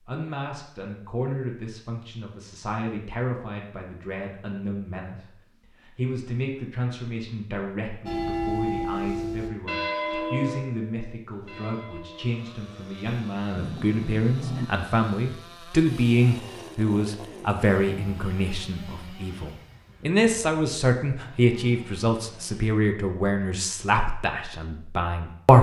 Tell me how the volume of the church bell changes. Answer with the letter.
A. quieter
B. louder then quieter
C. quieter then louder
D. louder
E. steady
A.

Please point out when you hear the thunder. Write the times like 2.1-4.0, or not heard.
13.6-14.7.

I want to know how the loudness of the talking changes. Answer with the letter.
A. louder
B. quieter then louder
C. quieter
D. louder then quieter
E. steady
A.